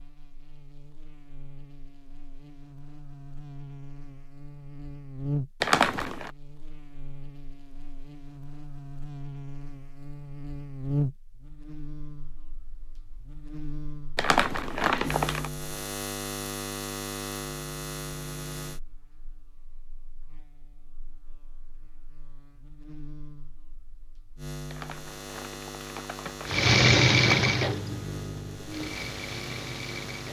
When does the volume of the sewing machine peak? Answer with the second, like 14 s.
27 s.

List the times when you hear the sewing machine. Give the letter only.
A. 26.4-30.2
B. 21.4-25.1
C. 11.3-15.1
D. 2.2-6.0
A.